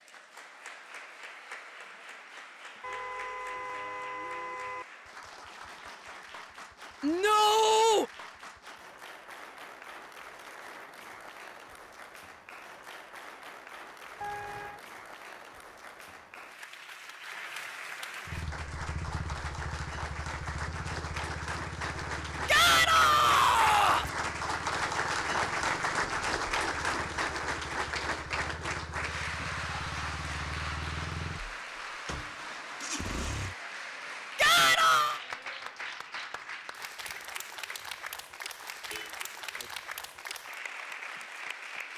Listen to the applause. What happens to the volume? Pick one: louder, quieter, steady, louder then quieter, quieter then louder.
louder then quieter.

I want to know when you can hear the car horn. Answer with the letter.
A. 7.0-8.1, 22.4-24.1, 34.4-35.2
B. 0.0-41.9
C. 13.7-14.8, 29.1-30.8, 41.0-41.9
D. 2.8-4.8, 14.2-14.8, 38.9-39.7
D.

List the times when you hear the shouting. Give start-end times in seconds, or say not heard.
7.0-8.1, 22.4-24.1, 34.4-35.2.